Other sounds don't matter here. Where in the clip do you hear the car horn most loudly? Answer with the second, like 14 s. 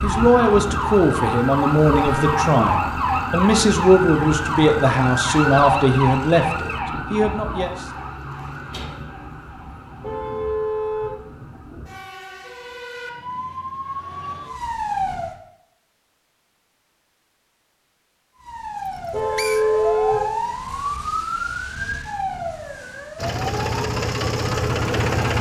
20 s.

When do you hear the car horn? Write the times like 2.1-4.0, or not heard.
2.0-2.5, 10.0-11.2, 19.1-20.2.